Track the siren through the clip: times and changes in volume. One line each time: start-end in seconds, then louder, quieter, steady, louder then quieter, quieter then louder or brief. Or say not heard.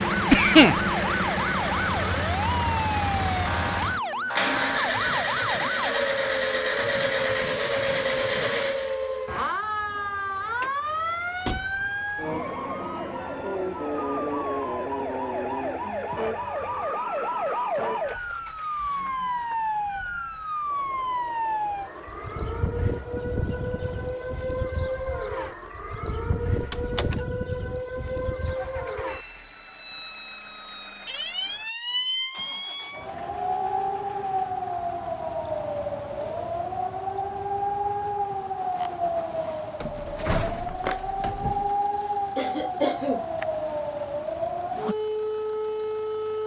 0.0-46.4 steady.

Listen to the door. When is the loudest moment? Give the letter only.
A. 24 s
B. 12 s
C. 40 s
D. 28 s
C.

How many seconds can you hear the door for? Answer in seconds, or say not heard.
3 s.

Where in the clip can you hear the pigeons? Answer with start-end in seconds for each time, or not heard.
not heard.